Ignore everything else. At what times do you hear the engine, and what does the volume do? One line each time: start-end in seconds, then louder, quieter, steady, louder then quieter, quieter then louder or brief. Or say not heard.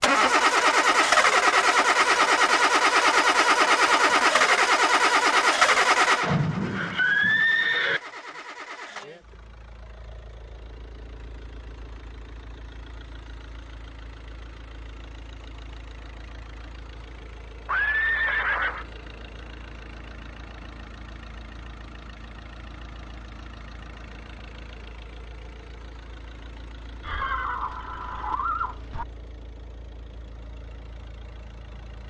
0.0-32.0 quieter.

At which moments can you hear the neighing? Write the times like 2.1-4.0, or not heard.
6.2-8.0, 17.6-18.9, 27.0-29.1.